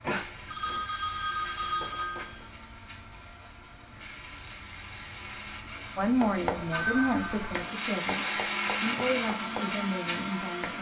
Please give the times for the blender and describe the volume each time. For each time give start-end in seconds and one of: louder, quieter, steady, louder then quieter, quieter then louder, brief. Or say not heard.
0.0-10.7 louder.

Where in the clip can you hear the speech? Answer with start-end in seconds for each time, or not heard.
6.0-10.7.